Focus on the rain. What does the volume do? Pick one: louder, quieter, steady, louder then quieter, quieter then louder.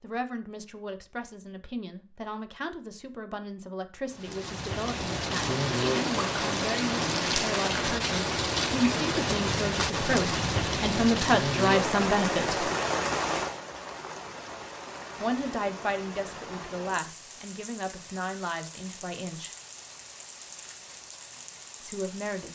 quieter.